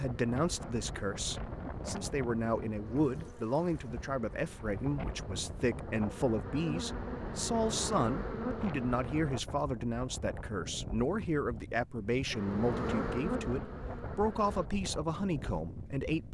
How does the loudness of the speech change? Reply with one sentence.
The volume of the speech stays about the same.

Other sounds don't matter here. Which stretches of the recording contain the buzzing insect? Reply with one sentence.
You can hear the buzzing insect from 0.0 to 9.3 s and from 12.3 to 14.7 s.